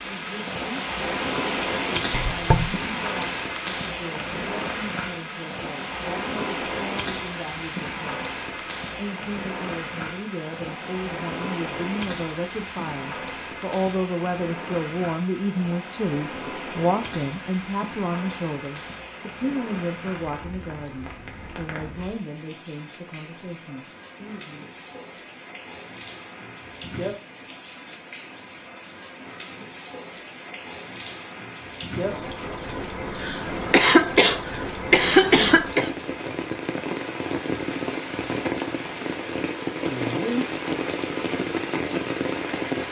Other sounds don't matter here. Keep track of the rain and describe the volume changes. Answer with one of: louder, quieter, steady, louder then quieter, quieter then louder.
quieter then louder.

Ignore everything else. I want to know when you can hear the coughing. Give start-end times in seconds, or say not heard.
2.1-2.8, 33.2-35.9.